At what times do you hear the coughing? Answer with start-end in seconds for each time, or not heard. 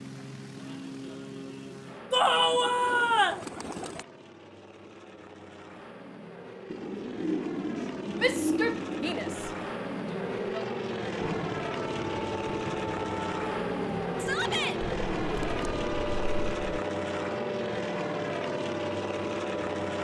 not heard.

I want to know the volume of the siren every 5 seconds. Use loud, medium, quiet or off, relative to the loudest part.
off, off, loud, loud.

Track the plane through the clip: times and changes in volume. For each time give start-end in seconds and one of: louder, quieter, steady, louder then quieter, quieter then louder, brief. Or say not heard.
0.0-19.9 louder.